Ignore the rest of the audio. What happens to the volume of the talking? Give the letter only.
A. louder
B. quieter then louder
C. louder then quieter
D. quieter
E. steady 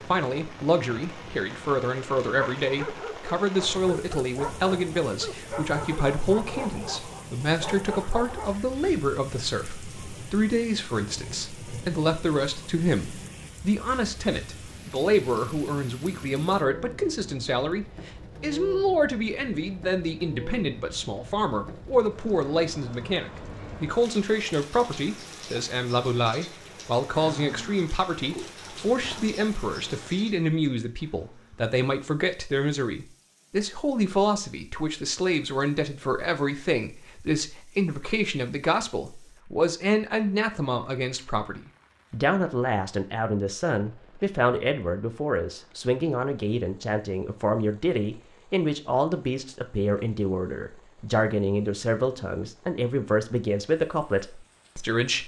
E.